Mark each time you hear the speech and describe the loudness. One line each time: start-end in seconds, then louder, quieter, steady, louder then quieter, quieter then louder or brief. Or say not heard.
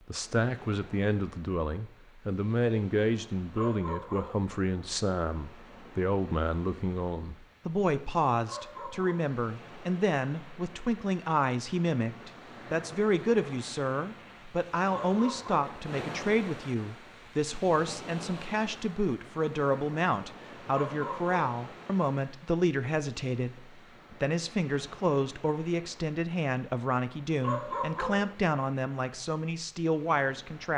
0.1-30.7 steady.